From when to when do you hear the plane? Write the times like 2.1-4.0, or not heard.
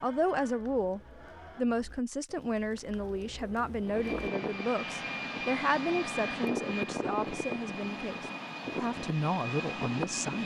3.9-10.4.